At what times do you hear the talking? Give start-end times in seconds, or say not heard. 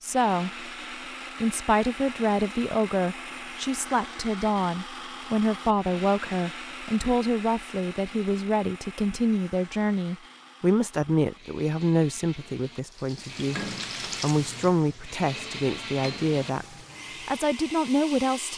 0.0-0.7, 1.4-13.6, 14.2-18.5.